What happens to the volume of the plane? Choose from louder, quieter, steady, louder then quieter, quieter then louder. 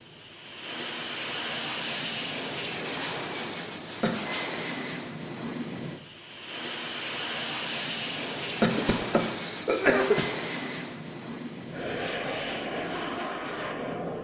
steady.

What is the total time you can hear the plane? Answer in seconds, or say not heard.
14 s.